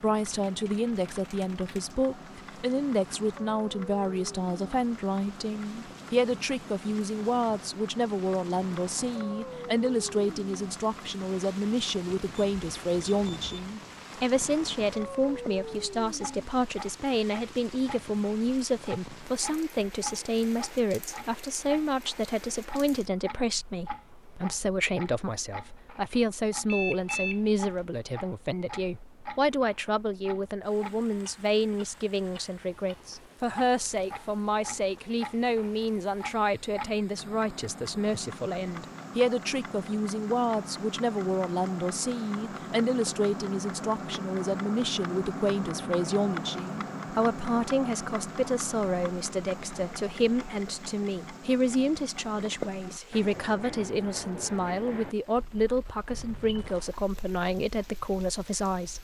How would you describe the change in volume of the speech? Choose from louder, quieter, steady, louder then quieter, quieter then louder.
steady.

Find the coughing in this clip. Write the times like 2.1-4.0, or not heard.
not heard.